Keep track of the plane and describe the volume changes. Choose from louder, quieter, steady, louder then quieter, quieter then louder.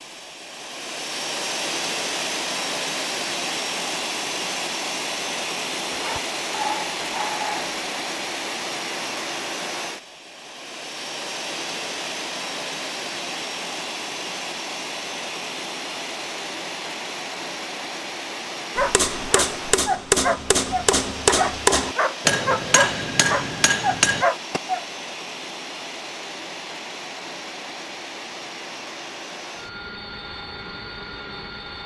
quieter.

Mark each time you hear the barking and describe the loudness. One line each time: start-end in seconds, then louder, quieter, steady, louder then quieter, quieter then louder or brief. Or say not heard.
5.9-7.7 brief
18.8-24.9 steady.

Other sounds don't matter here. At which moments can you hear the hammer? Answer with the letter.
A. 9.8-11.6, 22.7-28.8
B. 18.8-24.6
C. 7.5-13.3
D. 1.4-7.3
B.